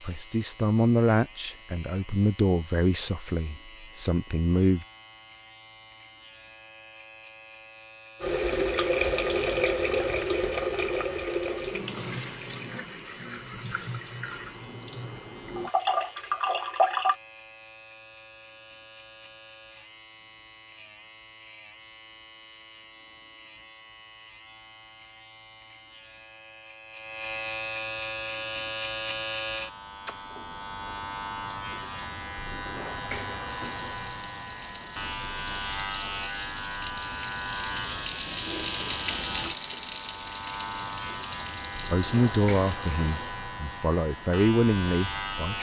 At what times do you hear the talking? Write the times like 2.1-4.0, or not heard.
0.0-4.8, 41.9-45.5.